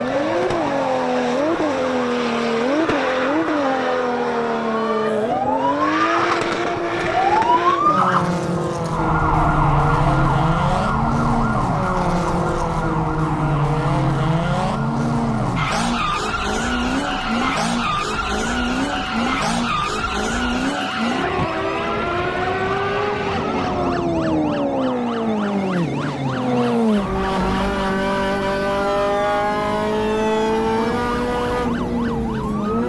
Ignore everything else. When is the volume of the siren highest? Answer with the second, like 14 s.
8 s.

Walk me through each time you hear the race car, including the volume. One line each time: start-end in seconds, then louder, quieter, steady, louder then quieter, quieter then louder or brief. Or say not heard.
0.0-32.8 steady.